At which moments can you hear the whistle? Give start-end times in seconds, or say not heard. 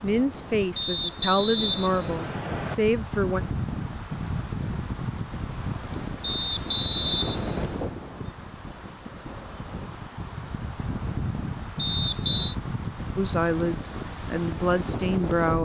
0.8-2.8, 6.2-7.8, 11.8-12.6.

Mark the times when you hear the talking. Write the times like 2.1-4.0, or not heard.
0.0-3.4, 13.2-15.5.